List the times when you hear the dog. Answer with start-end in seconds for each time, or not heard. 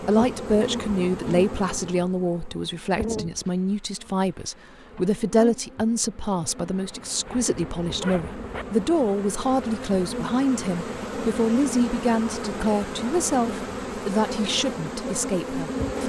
not heard.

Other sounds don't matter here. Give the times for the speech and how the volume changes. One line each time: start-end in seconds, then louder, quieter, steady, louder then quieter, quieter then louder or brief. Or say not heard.
0.0-16.0 steady.